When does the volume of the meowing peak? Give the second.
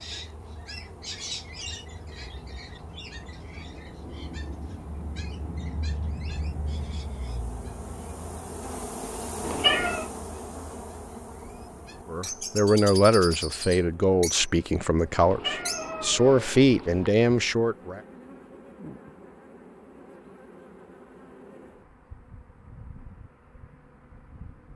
10 s.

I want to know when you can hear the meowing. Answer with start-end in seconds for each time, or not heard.
9.4-10.1, 15.2-17.1.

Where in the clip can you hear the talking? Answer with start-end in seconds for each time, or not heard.
12.1-18.0.